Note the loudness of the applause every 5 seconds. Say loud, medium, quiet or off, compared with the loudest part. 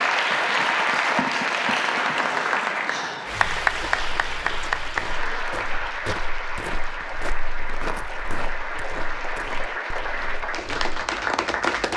loud, medium, loud.